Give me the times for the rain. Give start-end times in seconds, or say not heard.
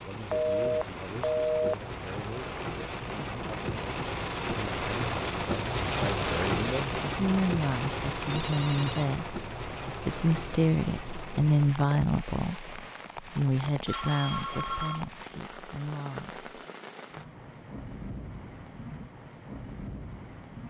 0.0-20.6.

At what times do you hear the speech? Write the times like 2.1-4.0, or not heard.
0.1-16.6.